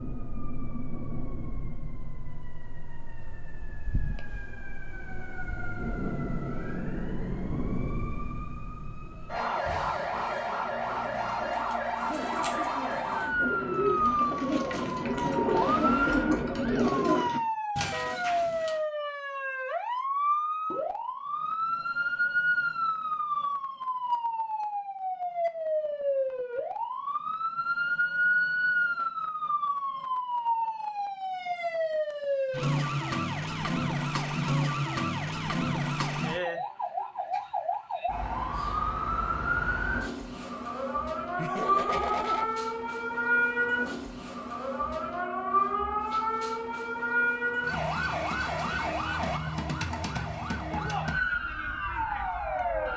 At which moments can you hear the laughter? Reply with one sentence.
You can hear the laughter from 41.4 to 42.5 s.